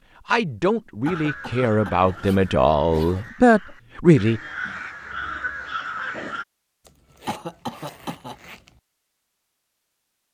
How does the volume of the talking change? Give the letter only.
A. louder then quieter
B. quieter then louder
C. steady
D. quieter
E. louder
E.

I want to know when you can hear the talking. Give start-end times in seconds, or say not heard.
0.2-4.4.